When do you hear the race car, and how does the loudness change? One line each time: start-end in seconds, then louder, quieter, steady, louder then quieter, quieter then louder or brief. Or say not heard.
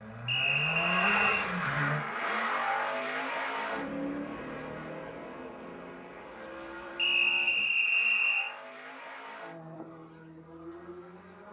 0.0-11.4 quieter.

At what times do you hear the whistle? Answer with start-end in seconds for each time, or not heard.
0.2-1.4, 7.0-8.6.